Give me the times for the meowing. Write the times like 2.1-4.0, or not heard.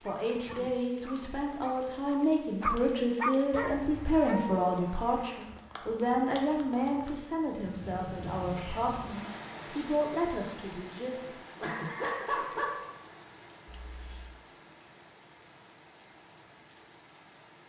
11.6-12.8.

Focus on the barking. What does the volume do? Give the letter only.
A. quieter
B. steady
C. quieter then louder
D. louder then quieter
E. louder
D.